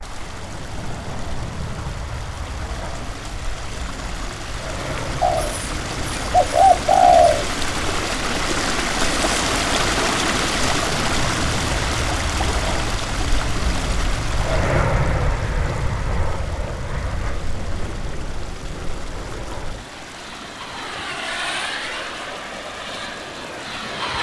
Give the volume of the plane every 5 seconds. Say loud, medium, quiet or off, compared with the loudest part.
medium, medium, loud, loud, loud.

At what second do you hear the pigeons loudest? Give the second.
7 s.